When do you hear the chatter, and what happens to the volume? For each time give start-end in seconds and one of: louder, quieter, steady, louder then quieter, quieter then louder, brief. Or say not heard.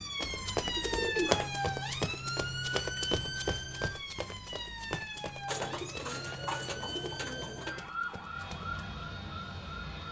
not heard.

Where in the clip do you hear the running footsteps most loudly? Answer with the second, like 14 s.
1 s.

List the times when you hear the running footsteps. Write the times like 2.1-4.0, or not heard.
0.2-8.8.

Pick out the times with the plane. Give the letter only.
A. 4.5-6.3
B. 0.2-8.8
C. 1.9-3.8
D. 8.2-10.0
D.